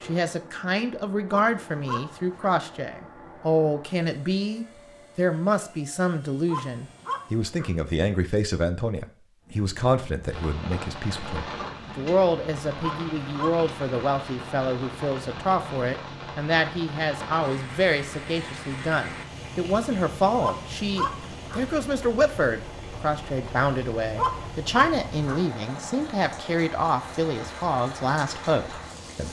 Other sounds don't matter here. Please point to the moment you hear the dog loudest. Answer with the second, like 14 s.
25 s.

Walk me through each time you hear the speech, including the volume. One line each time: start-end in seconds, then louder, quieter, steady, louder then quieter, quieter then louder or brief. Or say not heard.
0.0-29.2 steady.